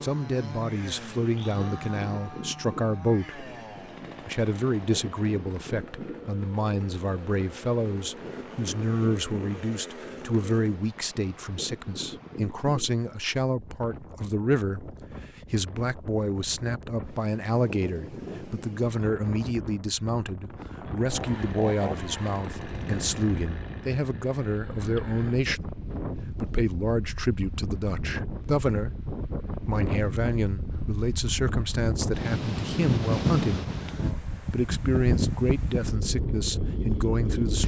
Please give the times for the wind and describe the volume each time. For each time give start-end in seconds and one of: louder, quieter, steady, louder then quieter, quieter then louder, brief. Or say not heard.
0.0-37.6 louder.